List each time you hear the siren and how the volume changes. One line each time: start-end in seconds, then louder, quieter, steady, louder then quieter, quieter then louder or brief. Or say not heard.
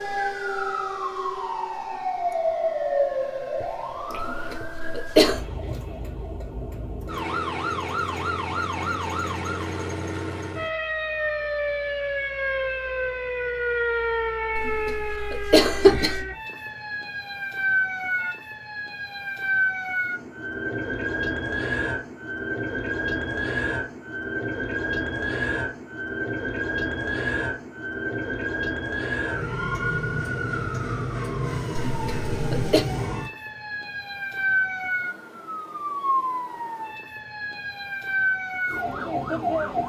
0.0-39.8 steady.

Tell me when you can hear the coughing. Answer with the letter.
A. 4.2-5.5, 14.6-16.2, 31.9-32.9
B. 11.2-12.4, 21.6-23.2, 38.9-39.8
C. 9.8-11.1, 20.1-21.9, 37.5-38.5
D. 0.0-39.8
A.